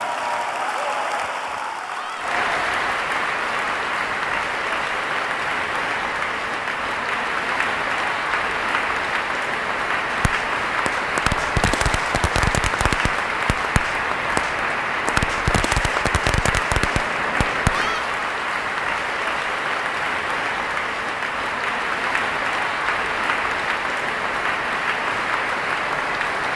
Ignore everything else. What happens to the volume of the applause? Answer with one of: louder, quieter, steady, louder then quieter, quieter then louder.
steady.